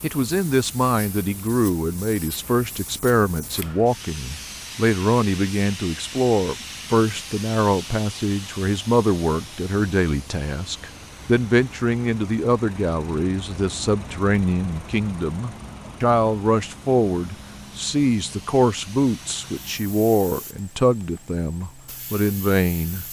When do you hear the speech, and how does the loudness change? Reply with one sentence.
You can hear the speech from 0.0 to 23.0 s, at a steady volume.